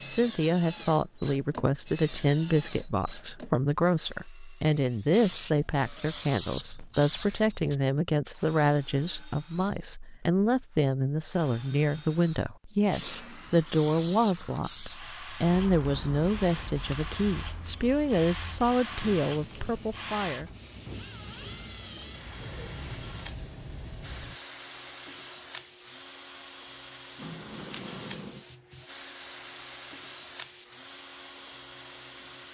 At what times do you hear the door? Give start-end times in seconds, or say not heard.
27.1-28.4.